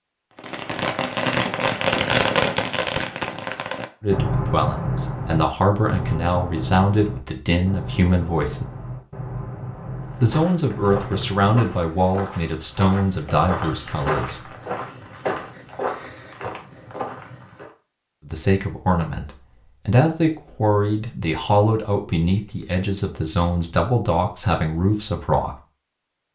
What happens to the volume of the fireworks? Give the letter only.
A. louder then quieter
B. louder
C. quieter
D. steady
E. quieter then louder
C.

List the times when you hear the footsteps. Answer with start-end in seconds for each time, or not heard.
10.1-17.7.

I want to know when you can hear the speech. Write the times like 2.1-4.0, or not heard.
4.0-8.7, 10.2-14.6, 18.2-25.6.